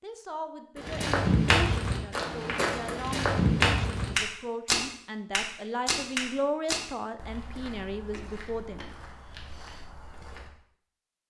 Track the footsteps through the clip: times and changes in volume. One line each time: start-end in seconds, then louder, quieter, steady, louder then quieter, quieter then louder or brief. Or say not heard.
0.8-10.5 quieter.